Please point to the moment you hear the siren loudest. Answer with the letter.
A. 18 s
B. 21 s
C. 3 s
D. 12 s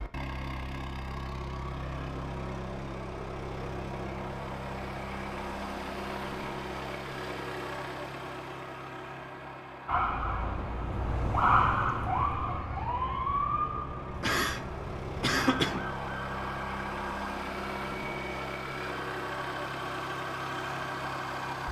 D.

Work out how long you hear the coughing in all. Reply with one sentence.
The coughing can be heard for 2 seconds in total.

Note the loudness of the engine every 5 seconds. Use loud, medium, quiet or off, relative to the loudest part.
loud, loud, medium, loud, loud.